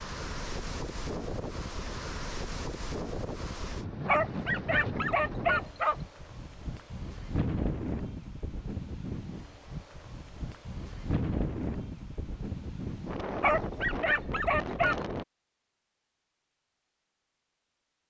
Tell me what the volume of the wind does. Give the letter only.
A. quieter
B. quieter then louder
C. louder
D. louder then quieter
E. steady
E.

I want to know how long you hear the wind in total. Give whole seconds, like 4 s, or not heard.
15 s.